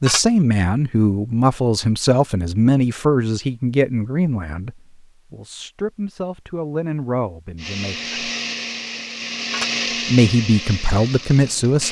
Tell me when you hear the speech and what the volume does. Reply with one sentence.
The speech can be heard from 0.0 to 8.2 s, getting quieter; and briefly from 10.1 to 11.8 s.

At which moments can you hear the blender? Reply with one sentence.
You can hear the blender from 7.5 to 11.8 s.